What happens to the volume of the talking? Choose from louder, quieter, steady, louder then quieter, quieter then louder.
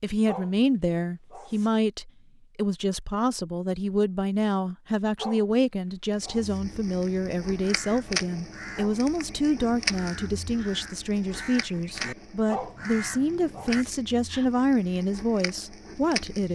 steady.